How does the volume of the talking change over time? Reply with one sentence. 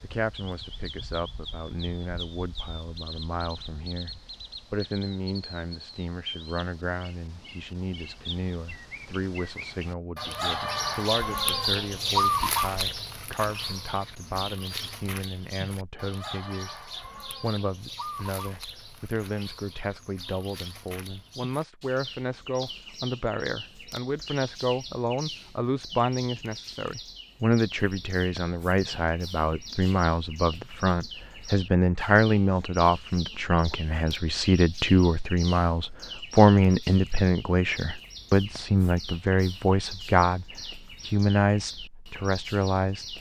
The loudness of the talking goes up.